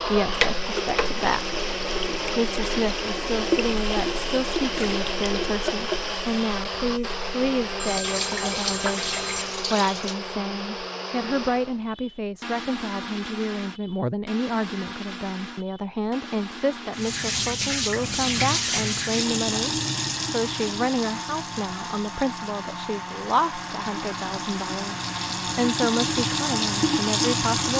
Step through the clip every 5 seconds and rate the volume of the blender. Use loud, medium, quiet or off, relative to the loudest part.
loud, loud, medium, medium, medium, loud.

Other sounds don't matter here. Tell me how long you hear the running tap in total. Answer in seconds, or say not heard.
21 s.